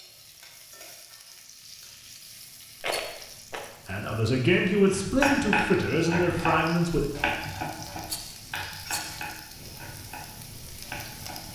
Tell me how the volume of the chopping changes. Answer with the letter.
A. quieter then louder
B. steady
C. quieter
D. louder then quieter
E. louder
C.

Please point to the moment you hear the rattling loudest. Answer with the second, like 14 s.
3 s.